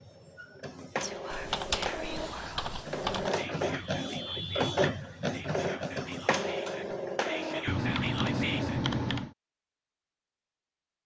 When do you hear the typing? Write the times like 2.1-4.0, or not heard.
1.3-3.4, 7.7-9.3.